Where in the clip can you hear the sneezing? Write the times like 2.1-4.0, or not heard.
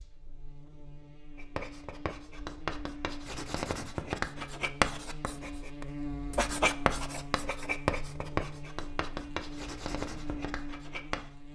not heard.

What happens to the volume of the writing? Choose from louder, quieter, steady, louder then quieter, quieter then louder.
louder then quieter.